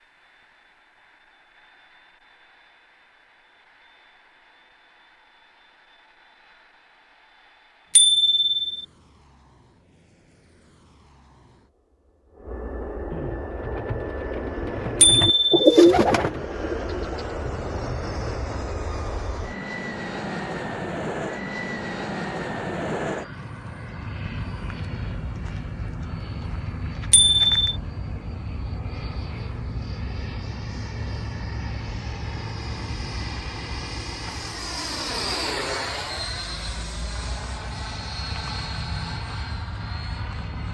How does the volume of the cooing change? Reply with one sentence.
The loudness of the cooing goes up, then down.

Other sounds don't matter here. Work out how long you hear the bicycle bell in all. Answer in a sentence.
You can hear the bicycle bell for 2 seconds altogether.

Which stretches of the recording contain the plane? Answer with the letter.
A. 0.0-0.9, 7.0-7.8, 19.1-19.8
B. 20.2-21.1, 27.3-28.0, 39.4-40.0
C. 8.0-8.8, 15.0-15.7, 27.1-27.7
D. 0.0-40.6
D.